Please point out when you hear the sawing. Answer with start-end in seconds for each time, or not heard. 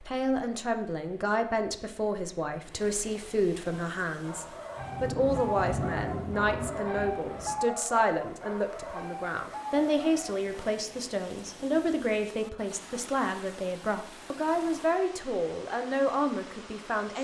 not heard.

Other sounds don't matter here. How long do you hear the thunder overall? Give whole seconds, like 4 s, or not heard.
3 s.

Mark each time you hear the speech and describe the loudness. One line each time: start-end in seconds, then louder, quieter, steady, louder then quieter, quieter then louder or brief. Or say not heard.
0.0-17.2 steady.